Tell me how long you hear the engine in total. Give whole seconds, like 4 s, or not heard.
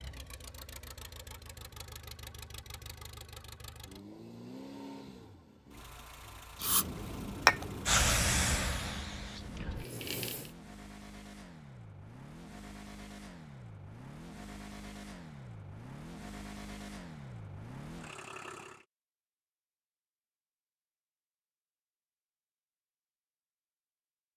19 s.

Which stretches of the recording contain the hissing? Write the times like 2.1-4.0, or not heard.
6.6-10.5.